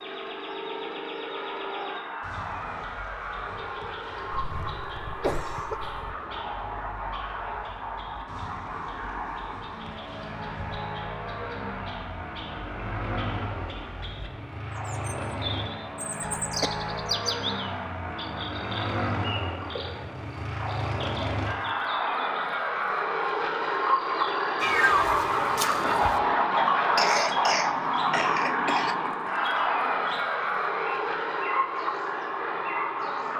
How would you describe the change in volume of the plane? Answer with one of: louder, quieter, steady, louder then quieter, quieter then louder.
louder.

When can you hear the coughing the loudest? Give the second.
27 s.